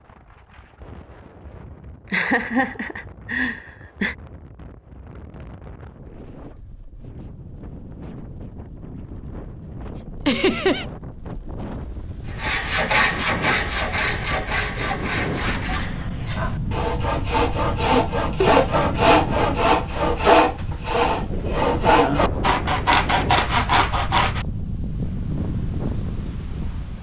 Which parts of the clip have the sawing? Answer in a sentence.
You can hear the sawing from 12.3 to 24.4 s.